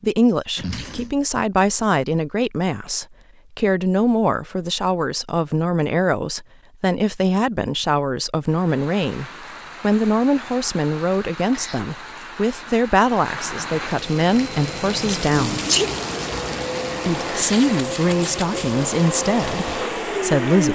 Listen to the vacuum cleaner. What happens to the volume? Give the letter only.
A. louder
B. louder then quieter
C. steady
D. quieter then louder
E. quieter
A.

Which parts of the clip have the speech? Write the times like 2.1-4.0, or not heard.
0.0-15.7, 17.1-20.6.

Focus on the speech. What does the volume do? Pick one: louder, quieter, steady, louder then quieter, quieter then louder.
steady.